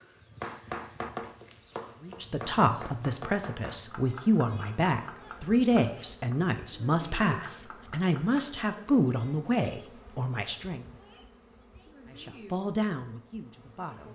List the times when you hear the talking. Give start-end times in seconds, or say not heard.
2.0-10.8, 12.1-14.1.